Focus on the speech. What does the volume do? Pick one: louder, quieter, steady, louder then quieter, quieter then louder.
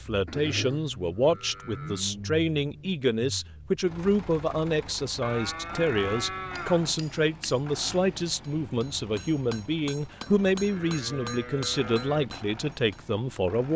steady.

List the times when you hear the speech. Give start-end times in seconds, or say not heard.
0.0-13.7.